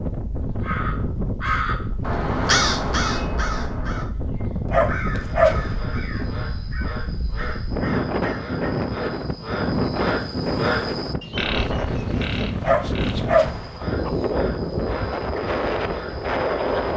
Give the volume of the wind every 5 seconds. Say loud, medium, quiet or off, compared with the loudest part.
medium, loud, loud, loud.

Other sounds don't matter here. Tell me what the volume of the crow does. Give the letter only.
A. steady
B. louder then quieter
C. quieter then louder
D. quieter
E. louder
D.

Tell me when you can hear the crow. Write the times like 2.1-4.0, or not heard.
0.6-8.8.